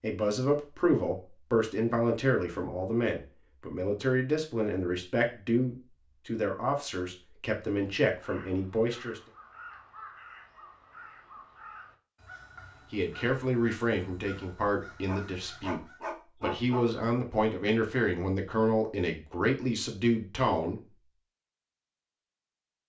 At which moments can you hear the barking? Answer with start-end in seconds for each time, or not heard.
15.1-16.9.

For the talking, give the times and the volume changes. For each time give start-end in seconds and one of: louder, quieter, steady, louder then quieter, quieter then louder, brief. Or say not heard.
0.0-9.2 steady
12.9-15.8 brief
16.4-20.8 steady.